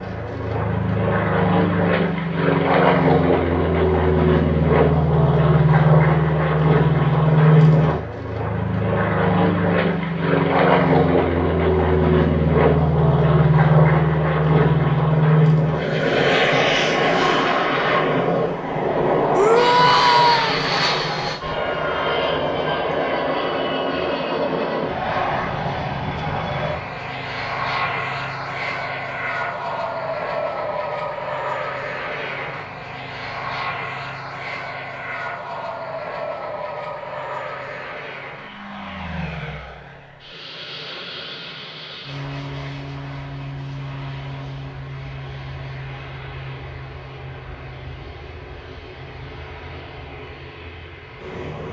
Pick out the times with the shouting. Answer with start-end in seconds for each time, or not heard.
19.3-20.6.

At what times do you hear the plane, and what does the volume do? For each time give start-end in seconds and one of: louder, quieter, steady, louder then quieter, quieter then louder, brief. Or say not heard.
0.0-51.6 quieter.